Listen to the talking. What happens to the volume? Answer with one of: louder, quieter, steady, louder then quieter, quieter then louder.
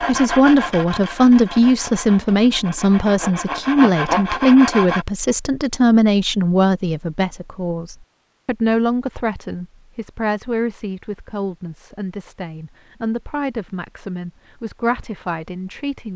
quieter.